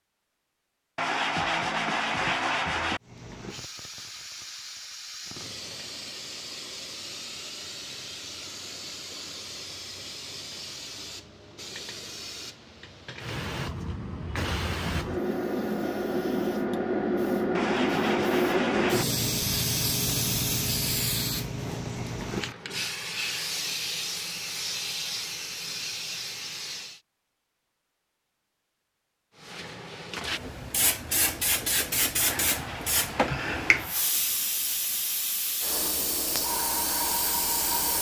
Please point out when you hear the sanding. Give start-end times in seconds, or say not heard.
0.9-3.0, 17.6-19.1, 32.1-34.1.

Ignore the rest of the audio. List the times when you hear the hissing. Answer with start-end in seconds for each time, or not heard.
3.0-27.0, 29.4-37.9.